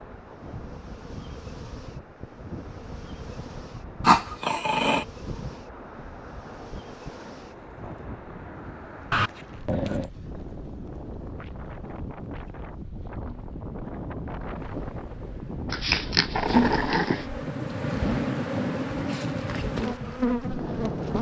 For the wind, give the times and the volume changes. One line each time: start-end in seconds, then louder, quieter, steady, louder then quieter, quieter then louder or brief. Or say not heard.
0.0-21.1 louder.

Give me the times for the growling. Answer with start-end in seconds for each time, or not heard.
4.0-5.0, 9.1-10.1, 15.7-17.2.